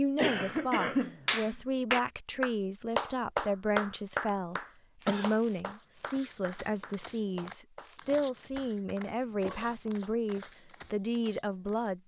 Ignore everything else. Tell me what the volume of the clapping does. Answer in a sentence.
The loudness of the clapping goes down.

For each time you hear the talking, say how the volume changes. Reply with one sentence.
You can hear the talking from 0.0 to 12.0 s, at a steady volume.